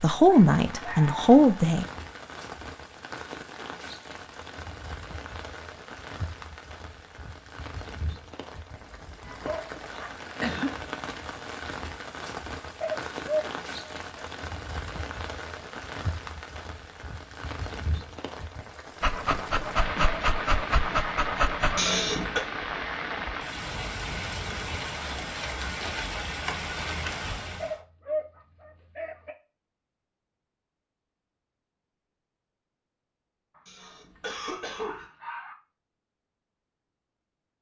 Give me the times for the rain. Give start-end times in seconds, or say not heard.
0.0-27.8.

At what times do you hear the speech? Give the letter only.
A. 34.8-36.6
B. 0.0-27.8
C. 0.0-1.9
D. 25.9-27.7
C.